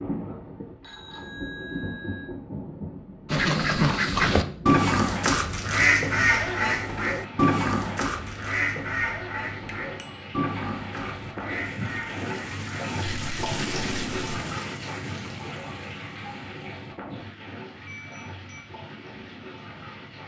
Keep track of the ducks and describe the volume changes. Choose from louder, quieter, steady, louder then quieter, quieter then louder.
quieter.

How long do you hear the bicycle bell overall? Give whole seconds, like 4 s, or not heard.
3 s.